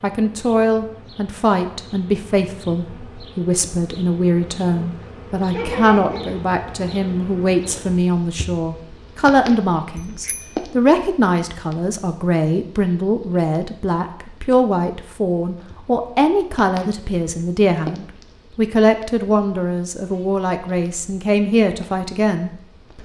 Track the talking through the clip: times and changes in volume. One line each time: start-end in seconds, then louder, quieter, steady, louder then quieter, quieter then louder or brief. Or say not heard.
0.0-23.0 steady.